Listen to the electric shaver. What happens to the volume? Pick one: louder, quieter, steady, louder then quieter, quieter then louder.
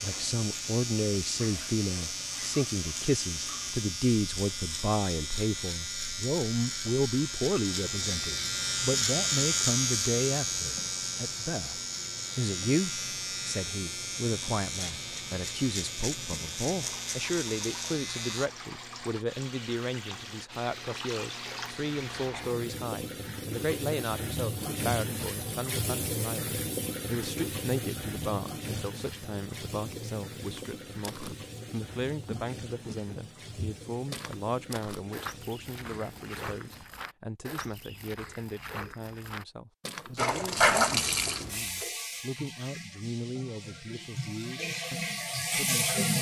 louder then quieter.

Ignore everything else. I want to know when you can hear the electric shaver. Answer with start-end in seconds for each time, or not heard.
0.0-18.5.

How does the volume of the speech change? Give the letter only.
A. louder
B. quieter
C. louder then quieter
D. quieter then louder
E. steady
B.